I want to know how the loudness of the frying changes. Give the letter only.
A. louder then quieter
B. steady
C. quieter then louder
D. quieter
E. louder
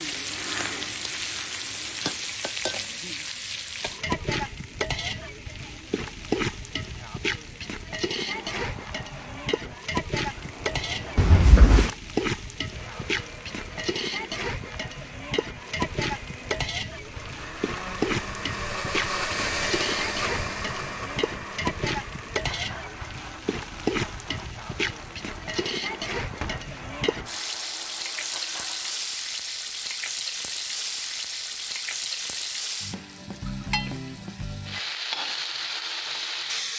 B.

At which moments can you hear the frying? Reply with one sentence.
The frying can be heard from 0.0 to 36.7 s.